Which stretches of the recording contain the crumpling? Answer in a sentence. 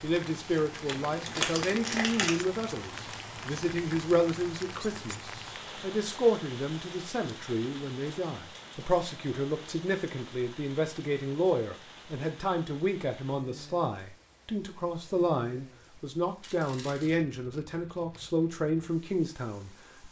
You can hear the crumpling from 0.8 to 2.4 s and from 16.4 to 17.1 s.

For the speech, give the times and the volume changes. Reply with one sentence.
The speech can be heard from 0.0 to 20.0 s, at a steady volume.